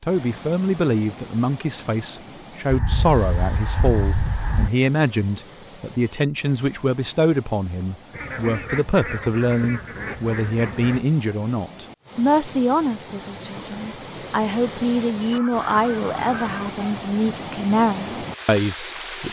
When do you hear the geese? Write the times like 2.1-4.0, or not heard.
2.6-4.7, 8.1-11.0, 15.3-17.0.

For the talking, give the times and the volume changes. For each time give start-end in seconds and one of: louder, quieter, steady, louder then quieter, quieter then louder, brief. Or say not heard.
0.0-19.2 steady.